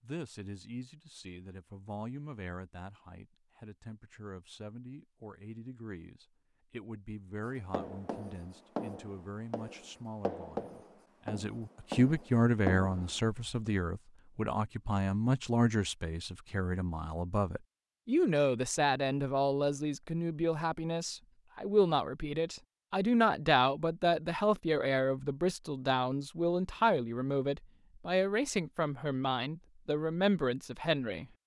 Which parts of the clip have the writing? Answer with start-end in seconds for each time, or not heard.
7.5-13.4.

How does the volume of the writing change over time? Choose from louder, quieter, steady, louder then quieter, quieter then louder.
quieter then louder.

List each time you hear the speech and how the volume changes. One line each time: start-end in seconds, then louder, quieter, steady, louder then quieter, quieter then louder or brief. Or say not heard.
0.0-31.2 louder.